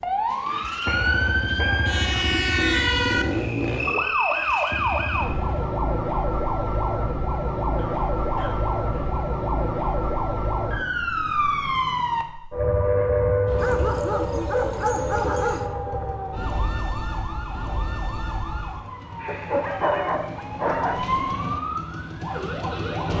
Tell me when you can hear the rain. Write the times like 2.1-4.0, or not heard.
not heard.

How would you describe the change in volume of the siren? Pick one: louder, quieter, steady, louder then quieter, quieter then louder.
quieter.